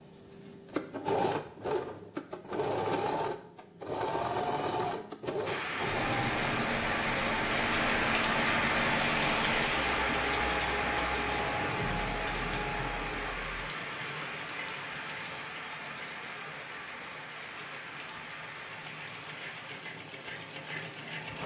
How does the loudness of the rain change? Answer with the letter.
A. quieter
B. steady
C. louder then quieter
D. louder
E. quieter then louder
A.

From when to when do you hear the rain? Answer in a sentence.
The rain can be heard from 5.5 to 21.4 s.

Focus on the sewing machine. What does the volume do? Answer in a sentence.
The loudness of the sewing machine goes down.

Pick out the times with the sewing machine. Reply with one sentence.
The sewing machine can be heard from 0.0 to 21.4 s.